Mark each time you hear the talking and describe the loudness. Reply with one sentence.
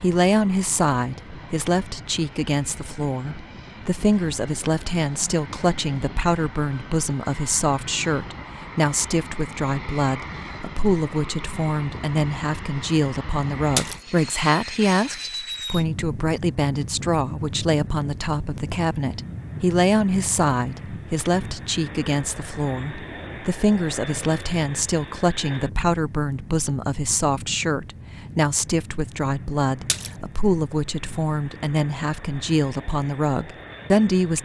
The talking can be heard from 0.0 to 34.4 s, at a steady volume.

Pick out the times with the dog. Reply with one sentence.
You can't hear the dog here.